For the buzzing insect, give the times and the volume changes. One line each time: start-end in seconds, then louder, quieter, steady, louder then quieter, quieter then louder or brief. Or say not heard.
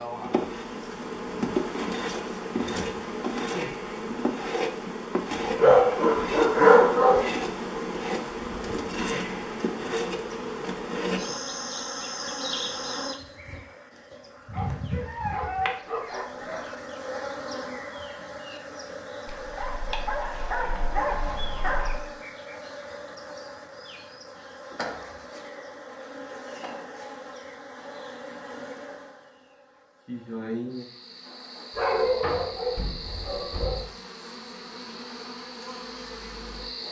0.0-36.8 quieter.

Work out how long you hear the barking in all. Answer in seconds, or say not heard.
9 s.